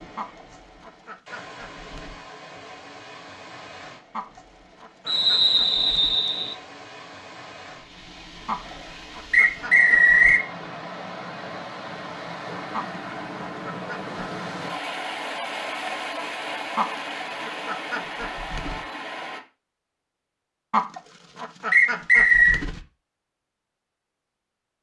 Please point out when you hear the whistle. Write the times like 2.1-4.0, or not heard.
5.0-6.5, 9.3-10.4, 21.7-22.6.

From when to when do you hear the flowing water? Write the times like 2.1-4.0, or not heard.
0.0-19.4.